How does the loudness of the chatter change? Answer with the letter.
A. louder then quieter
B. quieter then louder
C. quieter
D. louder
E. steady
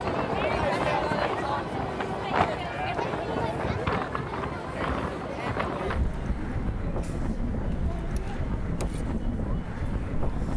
C.